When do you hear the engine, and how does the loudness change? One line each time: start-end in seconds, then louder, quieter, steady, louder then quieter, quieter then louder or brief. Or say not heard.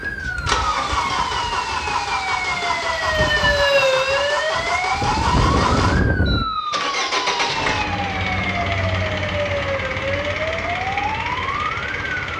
0.0-12.3 steady.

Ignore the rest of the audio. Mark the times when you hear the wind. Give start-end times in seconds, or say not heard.
0.0-6.5.